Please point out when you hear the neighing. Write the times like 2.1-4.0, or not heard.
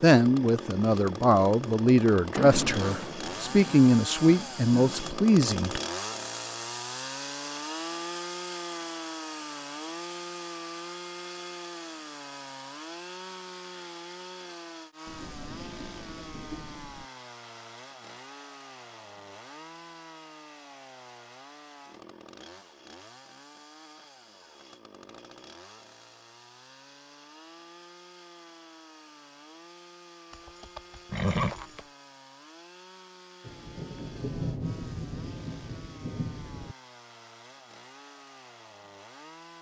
30.3-31.9.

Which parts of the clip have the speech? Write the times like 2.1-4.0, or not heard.
0.0-5.8.